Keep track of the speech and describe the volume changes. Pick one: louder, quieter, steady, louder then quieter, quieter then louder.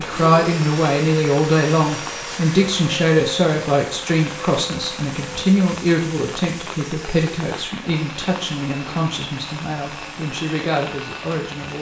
quieter.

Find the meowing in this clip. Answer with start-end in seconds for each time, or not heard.
not heard.